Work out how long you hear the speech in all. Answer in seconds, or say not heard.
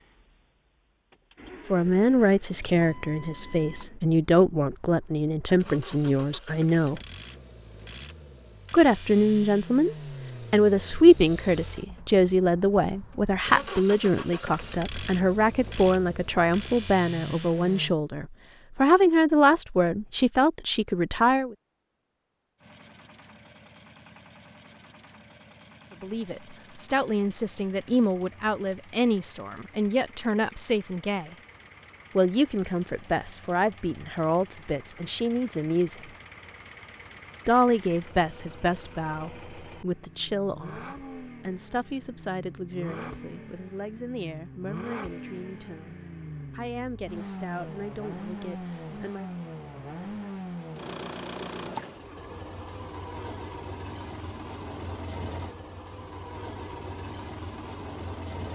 39 s.